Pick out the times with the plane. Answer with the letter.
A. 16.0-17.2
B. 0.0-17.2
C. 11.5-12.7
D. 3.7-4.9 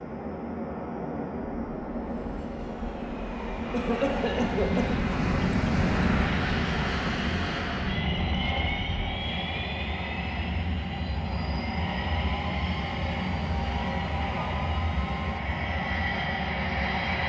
B.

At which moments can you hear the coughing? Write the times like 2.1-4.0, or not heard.
3.7-4.9.